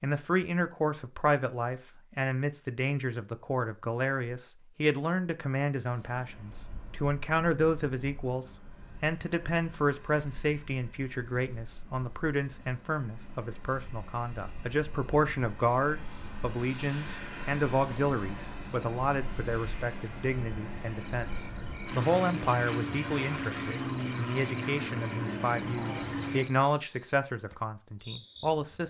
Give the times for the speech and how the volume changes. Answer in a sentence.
You can hear the speech from 0.0 to 28.8 s, at a steady volume.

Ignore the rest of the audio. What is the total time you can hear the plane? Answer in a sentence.
You can hear the plane for 21 seconds altogether.